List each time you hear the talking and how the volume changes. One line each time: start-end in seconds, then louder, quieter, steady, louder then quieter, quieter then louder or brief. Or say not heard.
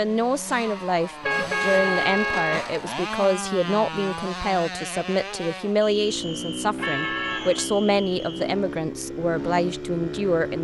0.0-10.5 steady.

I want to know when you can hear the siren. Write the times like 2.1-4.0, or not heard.
not heard.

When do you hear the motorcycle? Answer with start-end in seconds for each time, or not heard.
0.0-10.5.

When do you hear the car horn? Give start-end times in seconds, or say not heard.
1.2-2.7, 6.8-7.7.